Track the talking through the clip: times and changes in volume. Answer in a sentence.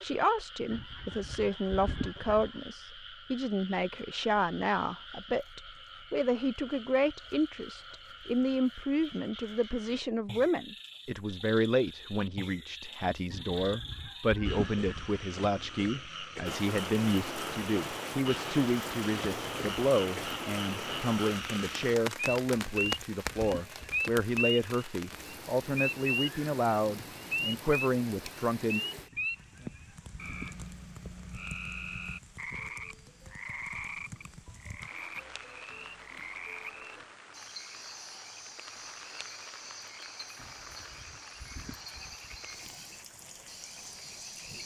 The talking can be heard from 0.0 to 28.8 s, at a steady volume.